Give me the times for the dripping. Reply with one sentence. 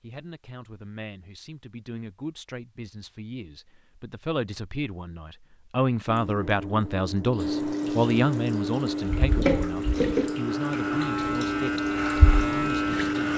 You can hear the dripping from 6.0 to 13.3 s.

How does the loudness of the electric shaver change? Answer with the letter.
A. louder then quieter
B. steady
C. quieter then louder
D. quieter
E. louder
E.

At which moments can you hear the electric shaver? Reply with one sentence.
You can hear the electric shaver from 9.1 to 13.3 s.